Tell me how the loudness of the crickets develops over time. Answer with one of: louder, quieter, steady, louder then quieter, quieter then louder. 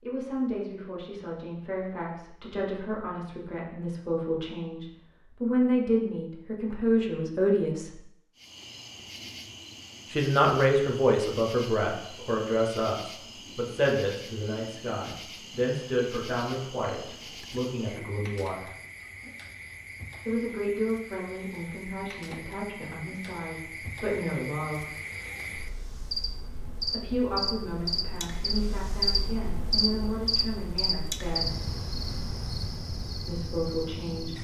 louder.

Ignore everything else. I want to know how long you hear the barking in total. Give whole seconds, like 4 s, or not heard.
not heard.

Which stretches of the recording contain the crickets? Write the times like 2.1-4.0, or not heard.
8.3-34.3.